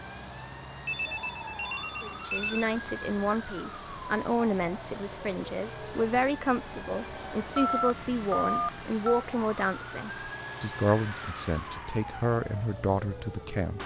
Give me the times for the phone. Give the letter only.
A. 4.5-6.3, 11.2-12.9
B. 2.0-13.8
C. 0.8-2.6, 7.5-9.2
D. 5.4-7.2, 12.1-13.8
C.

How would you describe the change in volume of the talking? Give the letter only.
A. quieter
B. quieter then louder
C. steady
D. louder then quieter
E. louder
C.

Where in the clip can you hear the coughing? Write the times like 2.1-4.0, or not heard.
not heard.